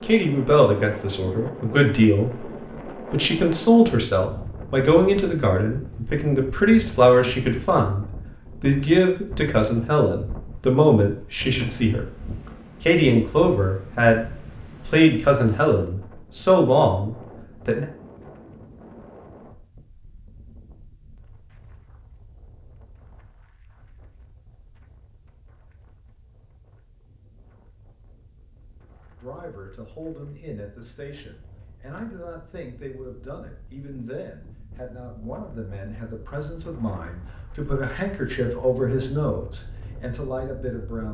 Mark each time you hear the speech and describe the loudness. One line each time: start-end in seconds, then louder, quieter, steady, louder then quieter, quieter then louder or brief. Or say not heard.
0.0-12.1 steady
12.8-17.9 steady
29.2-41.0 louder.